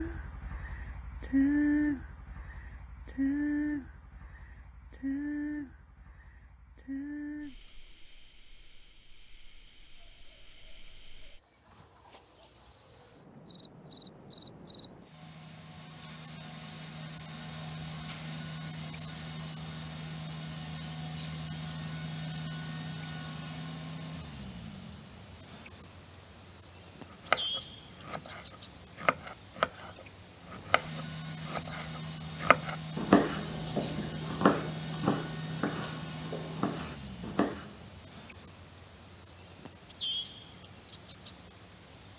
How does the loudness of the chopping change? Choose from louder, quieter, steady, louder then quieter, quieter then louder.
louder then quieter.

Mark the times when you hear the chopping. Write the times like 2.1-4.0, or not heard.
27.1-37.7.